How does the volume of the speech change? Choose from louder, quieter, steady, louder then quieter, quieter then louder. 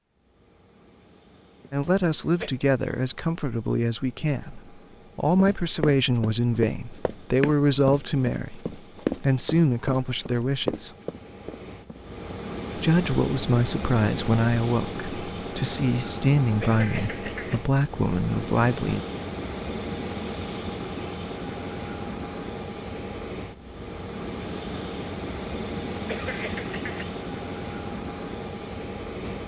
steady.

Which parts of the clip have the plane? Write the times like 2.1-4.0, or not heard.
0.0-29.4.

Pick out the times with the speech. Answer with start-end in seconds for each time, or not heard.
1.7-10.9, 12.8-19.1.